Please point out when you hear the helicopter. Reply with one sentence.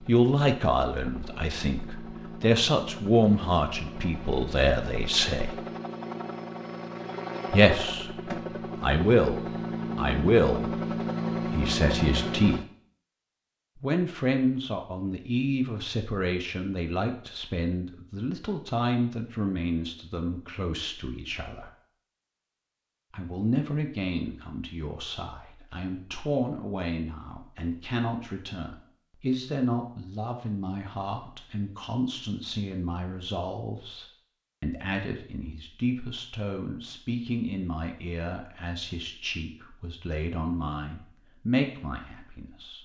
You can hear the helicopter from 0.0 to 12.7 s.